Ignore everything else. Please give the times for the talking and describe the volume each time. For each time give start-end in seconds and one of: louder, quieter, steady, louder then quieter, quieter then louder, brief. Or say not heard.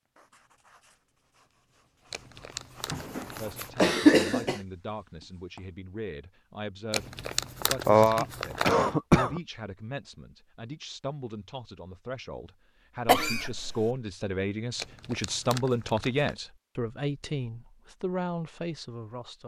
3.4-19.4 louder.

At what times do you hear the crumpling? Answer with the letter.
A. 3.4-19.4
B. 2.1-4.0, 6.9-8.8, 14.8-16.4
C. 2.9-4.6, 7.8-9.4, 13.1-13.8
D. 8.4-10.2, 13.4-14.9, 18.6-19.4
B.